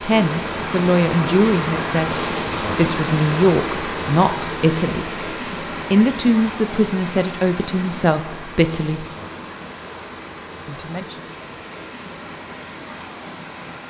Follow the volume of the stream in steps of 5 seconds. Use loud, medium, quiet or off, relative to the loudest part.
loud, medium, medium.